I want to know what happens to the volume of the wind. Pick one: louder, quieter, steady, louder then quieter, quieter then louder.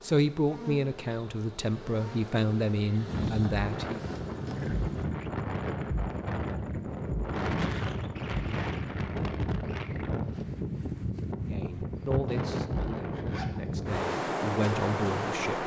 steady.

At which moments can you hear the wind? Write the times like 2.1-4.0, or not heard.
2.9-15.6.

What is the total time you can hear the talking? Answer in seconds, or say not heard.
8 s.